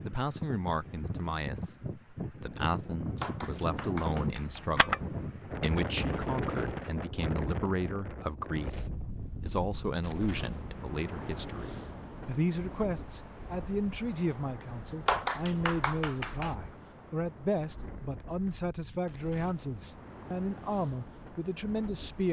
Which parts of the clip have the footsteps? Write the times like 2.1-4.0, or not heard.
not heard.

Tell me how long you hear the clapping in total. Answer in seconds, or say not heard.
3 s.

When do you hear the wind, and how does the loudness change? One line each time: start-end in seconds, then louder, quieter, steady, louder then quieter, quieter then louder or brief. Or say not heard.
0.0-22.2 quieter.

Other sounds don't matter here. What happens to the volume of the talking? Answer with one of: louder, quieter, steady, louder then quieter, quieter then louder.
steady.